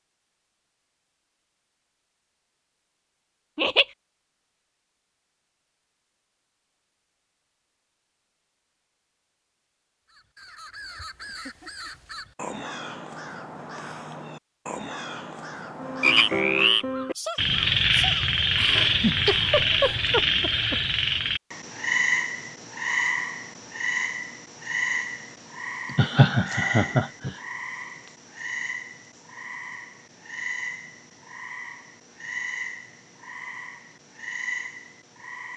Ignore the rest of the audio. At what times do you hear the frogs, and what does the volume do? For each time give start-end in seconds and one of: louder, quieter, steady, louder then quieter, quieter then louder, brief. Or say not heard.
15.8-35.5 quieter.